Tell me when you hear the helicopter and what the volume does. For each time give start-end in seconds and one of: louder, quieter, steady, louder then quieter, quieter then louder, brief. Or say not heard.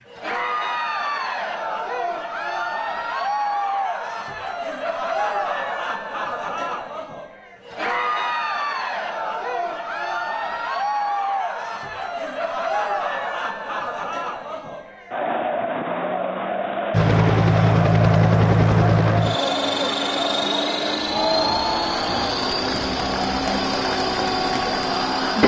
16.9-25.4 quieter.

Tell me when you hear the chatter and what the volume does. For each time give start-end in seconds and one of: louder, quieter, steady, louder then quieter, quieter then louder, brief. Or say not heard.
0.1-25.4 steady.